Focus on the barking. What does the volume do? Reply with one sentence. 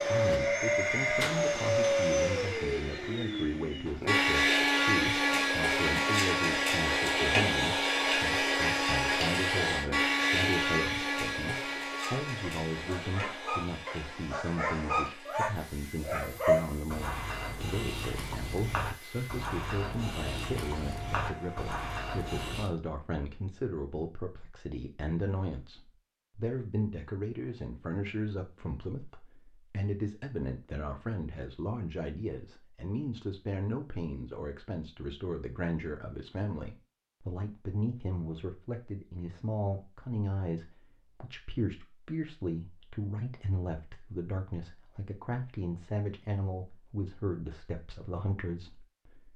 The volume of the barking goes up, then down.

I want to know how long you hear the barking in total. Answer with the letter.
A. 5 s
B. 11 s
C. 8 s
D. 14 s
B.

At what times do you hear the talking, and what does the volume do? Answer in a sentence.
The talking can be heard from 0.1 to 49.3 s, at a steady volume.